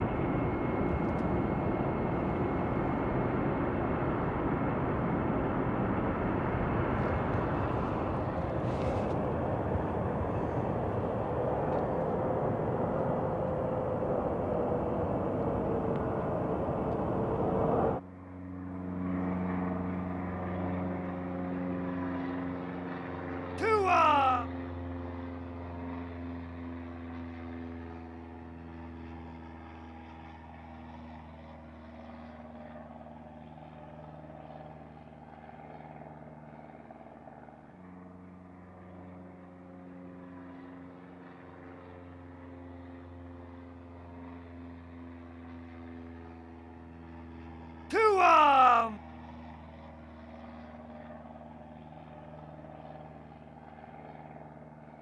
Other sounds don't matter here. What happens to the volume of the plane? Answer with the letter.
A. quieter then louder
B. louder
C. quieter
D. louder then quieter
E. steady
C.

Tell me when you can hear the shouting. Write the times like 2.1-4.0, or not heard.
23.6-24.4, 47.9-49.0.